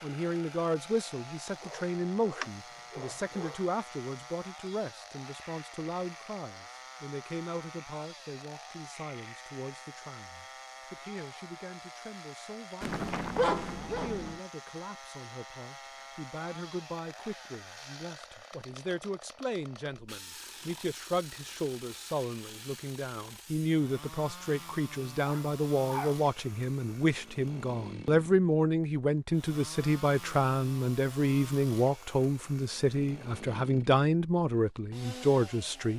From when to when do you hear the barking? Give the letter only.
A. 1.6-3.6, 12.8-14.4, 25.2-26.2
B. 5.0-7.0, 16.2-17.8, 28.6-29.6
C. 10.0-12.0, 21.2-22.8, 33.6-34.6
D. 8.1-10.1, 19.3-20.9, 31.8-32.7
A.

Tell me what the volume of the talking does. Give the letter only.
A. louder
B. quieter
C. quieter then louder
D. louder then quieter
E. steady
C.